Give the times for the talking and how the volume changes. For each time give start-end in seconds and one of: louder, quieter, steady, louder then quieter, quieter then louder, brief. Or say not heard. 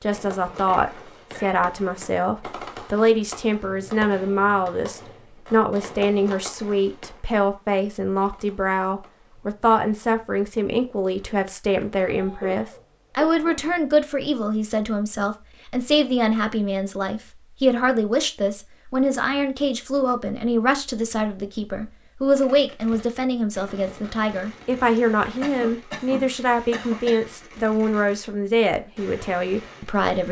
0.0-30.2 steady.